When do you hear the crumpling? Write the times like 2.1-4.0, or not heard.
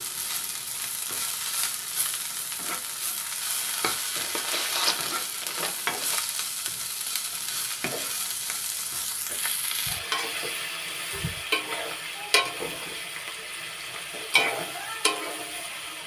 4.2-6.2.